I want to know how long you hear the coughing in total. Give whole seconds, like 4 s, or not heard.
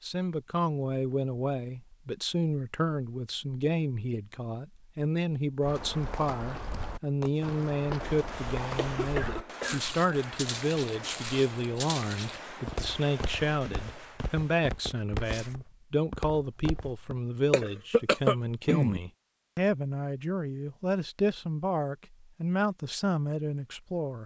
3 s.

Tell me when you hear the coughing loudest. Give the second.
18 s.